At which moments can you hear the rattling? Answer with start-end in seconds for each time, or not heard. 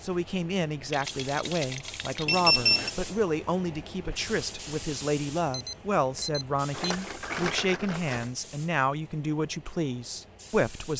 0.9-2.5, 6.7-8.3.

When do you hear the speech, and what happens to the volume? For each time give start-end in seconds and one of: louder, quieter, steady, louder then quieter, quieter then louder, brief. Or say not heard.
0.0-10.9 steady.